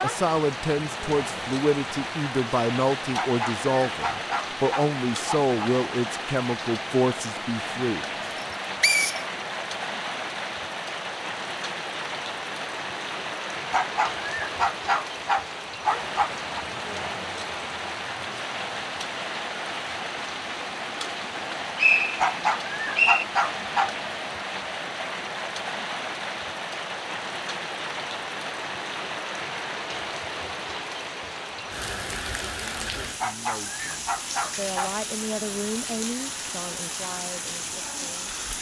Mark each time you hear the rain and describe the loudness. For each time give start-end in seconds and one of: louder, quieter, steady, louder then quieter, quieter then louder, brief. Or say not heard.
0.0-38.5 steady.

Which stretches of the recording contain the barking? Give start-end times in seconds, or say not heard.
3.1-5.5, 13.7-16.6, 22.2-23.9, 33.2-35.0.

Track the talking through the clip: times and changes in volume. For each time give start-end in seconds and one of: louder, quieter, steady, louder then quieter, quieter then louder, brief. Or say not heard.
0.0-8.1 steady
33.0-38.3 louder then quieter.